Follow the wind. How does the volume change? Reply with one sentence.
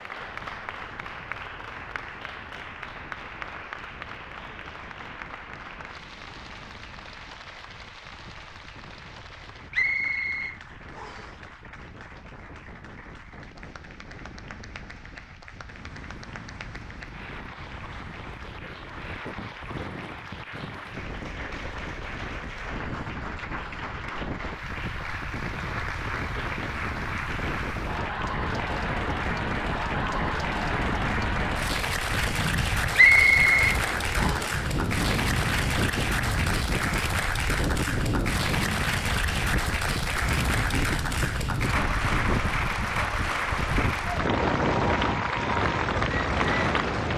The volume of the wind goes up.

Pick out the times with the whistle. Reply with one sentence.
The whistle can be heard from 9.7 to 11.3 s and from 33.0 to 34.5 s.